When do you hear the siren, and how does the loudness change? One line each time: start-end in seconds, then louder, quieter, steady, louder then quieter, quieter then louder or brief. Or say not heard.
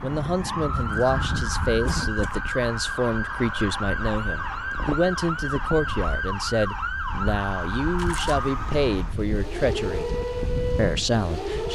0.0-11.7 steady.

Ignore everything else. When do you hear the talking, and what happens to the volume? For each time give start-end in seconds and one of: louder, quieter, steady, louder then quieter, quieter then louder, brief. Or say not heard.
0.0-10.1 steady
10.8-11.7 brief.